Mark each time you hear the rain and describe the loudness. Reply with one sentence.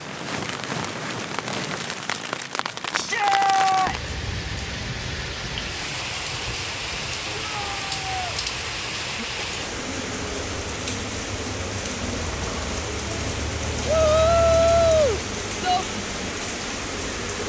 The rain can be heard from 0.0 to 17.4 s, at a steady volume.